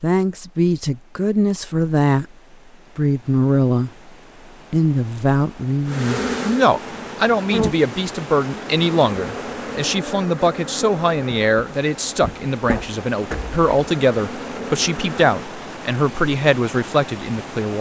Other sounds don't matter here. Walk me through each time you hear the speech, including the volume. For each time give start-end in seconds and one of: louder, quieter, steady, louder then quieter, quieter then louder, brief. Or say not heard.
0.0-2.2 brief
3.0-4.1 brief
4.7-17.7 steady.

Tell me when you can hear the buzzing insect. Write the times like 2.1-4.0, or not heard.
5.8-15.4.